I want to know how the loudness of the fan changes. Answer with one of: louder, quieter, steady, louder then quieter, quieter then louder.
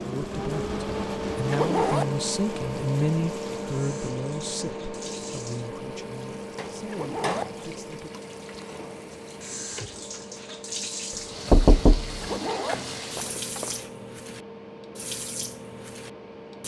quieter.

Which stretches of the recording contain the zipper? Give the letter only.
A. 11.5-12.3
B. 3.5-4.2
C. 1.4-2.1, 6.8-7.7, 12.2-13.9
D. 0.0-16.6
C.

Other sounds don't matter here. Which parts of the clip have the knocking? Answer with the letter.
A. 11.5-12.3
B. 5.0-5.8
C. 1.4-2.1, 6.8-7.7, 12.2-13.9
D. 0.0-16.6
A.